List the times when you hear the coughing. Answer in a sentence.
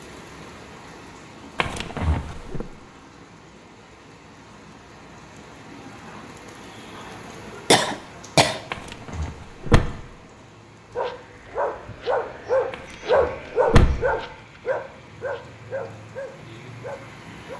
You can hear the coughing from 7.7 to 8.6 s.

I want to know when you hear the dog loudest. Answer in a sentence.
The loudest moment of the dog is at 13 seconds.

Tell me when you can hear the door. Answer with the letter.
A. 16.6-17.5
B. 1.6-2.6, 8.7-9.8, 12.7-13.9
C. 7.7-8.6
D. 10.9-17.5
B.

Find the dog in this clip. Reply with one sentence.
You can hear the dog from 10.9 to 17.5 s.